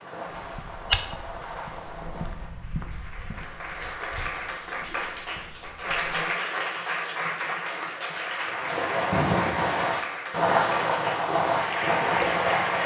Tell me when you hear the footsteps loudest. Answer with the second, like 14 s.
1 s.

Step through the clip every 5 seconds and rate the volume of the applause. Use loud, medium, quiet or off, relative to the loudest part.
medium, loud, loud.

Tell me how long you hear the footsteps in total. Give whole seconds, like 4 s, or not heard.
6 s.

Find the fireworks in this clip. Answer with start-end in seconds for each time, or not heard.
0.0-2.6, 8.4-12.8.